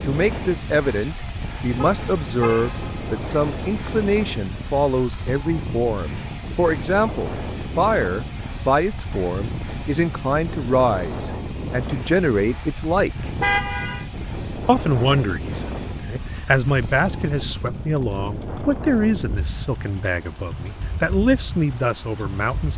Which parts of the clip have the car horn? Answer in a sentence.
You can hear the car horn from 1.8 to 3.1 s and from 13.4 to 14.1 s.